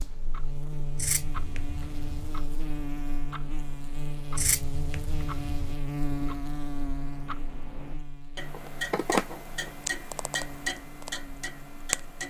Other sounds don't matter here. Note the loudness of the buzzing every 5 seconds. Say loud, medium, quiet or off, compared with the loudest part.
loud, loud, medium.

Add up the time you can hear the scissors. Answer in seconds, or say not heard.
4 s.